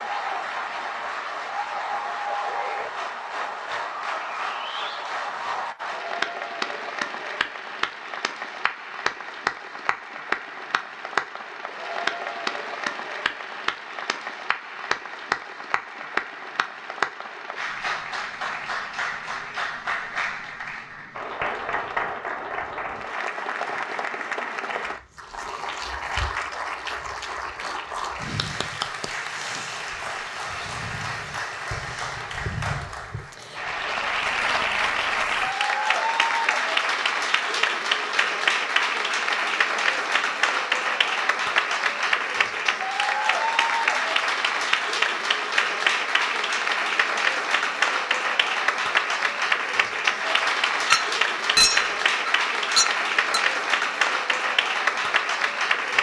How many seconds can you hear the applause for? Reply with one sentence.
The applause can be heard for 56 seconds in total.